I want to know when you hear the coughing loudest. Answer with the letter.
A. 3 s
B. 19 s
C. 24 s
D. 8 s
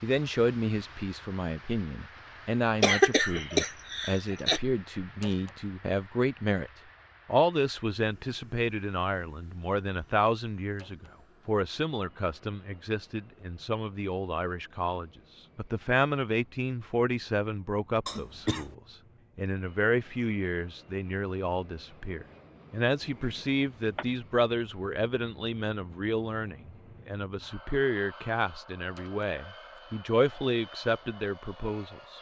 A.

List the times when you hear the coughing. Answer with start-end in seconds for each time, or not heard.
2.8-4.6, 18.1-18.8, 23.1-24.1.